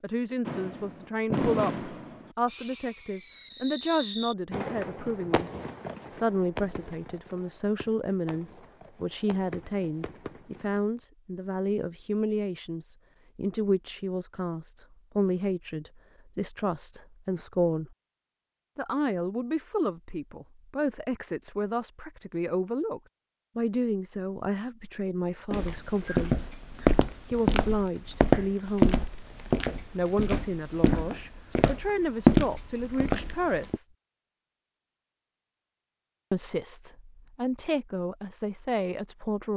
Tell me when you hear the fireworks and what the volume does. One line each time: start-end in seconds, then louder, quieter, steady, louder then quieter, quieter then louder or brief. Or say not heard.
0.5-10.8 quieter.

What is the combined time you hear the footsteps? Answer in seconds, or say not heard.
8 s.